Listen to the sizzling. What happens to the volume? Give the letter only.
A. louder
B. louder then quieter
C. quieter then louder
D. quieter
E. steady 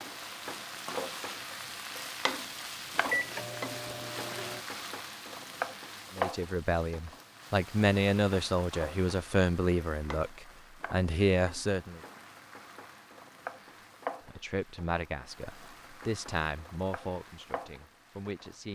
D.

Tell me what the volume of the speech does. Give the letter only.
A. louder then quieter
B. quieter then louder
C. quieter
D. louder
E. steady
C.